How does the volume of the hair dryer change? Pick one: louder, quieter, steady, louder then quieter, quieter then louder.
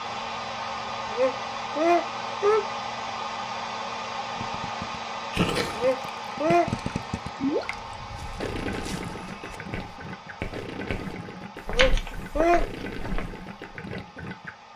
quieter.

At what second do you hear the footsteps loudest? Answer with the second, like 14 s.
12 s.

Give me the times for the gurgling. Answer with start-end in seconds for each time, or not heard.
4.3-14.5.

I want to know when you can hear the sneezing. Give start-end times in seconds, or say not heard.
1.1-2.6, 5.8-6.7, 11.7-12.7.